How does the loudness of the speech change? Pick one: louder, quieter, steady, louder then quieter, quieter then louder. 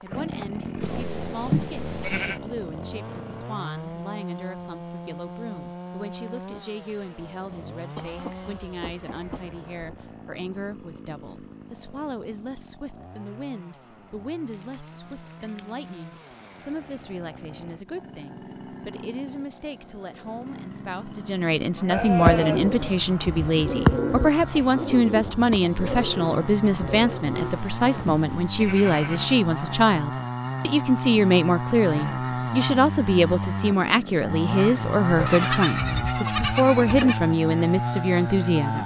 louder.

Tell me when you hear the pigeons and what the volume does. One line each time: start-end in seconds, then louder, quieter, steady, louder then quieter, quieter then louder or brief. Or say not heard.
21.9-28.1 louder then quieter.